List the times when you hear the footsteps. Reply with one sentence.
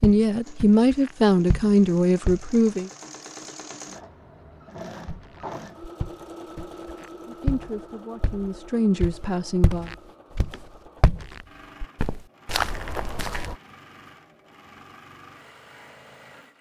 You can hear the footsteps from 0.0 to 2.6 s and from 5.0 to 13.6 s.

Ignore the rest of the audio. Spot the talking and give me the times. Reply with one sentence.
The talking can be heard from 0.0 to 2.9 s and from 7.2 to 9.9 s.